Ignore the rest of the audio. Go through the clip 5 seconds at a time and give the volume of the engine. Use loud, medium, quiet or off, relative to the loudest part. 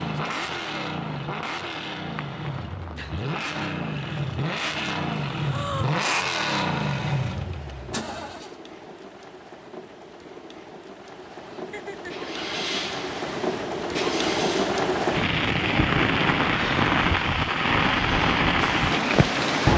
loud, loud, medium, loud.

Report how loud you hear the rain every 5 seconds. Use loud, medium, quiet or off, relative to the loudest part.
quiet, quiet, medium, loud.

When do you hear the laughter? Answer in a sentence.
The laughter can be heard from 11.7 to 12.3 s.